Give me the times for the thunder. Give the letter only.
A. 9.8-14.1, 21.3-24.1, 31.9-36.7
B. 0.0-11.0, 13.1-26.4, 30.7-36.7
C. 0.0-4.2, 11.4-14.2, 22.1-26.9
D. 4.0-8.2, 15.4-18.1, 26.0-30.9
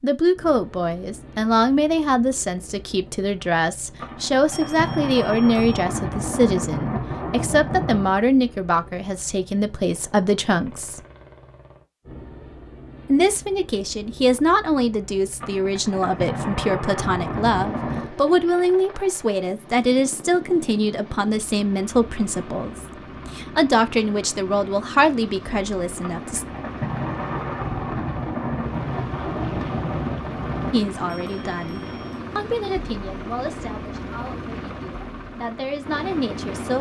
D.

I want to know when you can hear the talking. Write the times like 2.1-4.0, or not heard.
0.0-11.0, 13.1-26.4, 30.7-36.7.